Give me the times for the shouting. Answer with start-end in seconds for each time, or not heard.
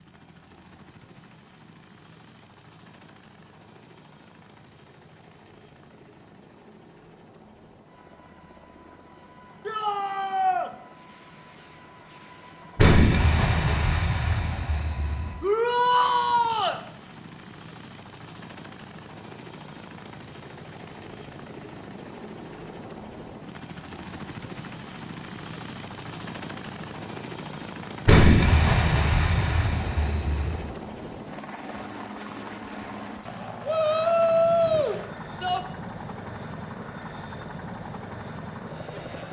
9.7-10.7, 15.4-16.8, 33.6-35.6.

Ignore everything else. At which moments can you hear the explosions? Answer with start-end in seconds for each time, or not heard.
12.8-15.3, 28.1-30.6.